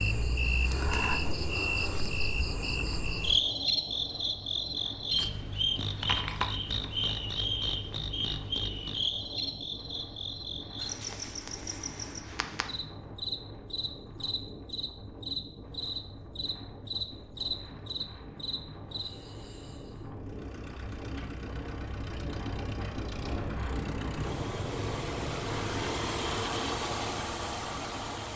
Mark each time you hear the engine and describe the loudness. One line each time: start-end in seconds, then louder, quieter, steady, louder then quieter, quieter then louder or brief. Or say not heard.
20.1-28.3 louder.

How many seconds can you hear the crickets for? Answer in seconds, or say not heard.
20 s.